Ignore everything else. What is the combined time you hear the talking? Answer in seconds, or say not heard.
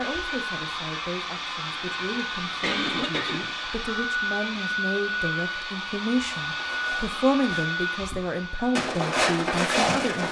10 s.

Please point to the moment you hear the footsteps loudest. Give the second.
10 s.